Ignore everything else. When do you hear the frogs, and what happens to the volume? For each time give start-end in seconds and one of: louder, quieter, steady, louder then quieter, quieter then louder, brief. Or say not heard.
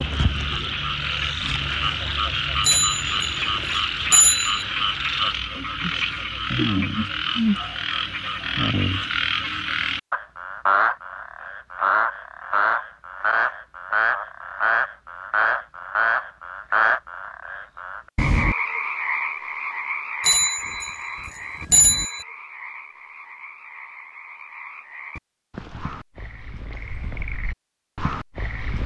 0.0-28.8 quieter.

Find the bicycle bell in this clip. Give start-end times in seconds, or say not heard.
2.6-4.7, 20.2-22.2.